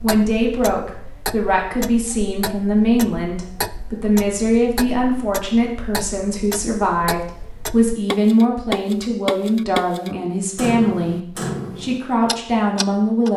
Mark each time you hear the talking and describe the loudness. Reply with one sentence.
You can hear the talking from 0.0 to 13.3 s, at a steady volume.